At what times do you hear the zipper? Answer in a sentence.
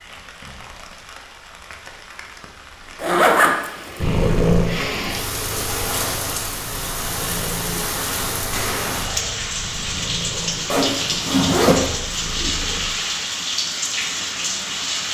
The zipper can be heard from 3.0 to 4.3 s and from 10.7 to 11.9 s.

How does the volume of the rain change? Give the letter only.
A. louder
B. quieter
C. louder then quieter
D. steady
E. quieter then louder
A.